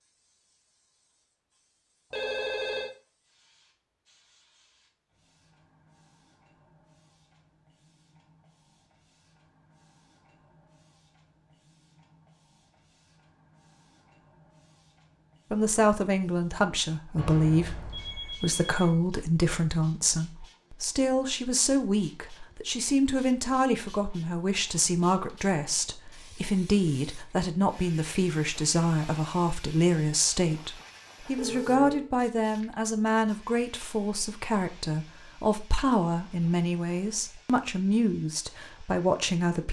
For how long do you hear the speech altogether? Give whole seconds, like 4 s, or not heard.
24 s.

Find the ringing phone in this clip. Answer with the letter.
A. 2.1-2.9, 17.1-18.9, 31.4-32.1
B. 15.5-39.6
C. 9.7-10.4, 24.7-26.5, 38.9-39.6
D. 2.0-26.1
A.